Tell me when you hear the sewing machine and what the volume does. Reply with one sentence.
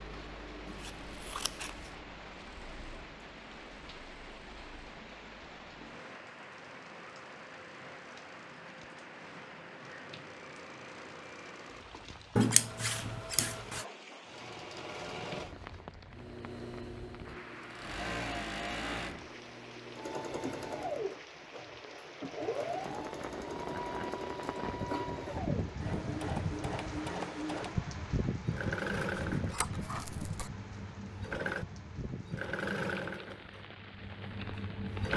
You can hear the sewing machine from 0.0 to 35.1 s, getting louder.